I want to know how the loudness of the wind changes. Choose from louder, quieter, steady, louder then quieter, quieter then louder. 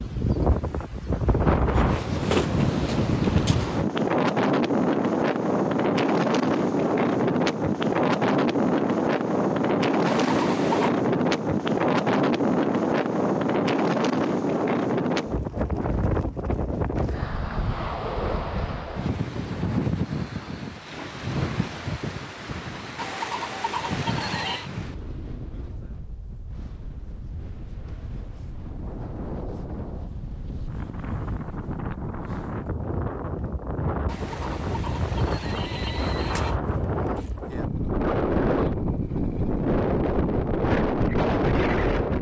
quieter then louder.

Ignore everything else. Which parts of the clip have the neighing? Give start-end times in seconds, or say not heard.
10.1-10.9, 22.9-24.7, 34.0-36.6.